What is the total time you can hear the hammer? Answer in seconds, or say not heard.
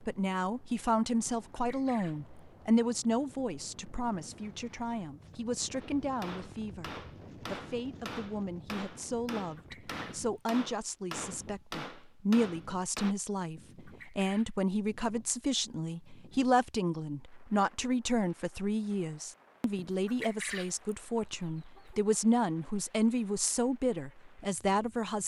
7 s.